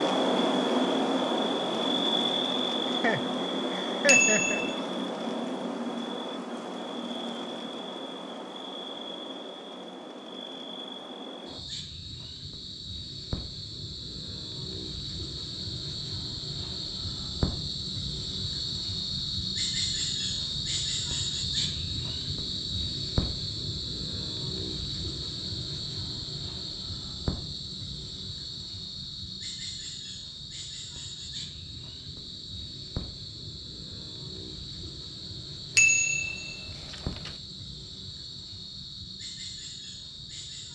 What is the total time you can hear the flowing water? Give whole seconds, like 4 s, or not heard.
not heard.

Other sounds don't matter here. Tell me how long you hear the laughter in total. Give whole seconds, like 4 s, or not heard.
2 s.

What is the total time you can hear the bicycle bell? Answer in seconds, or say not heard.
2 s.